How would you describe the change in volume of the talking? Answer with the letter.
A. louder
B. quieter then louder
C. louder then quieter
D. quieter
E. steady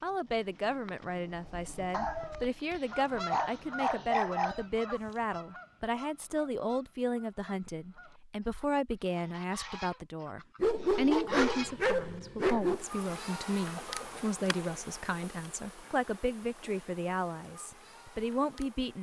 E.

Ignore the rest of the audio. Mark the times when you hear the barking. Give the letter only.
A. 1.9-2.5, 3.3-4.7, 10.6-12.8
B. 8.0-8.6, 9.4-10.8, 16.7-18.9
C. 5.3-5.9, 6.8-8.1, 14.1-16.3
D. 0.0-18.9
A.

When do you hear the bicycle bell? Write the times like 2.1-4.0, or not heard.
not heard.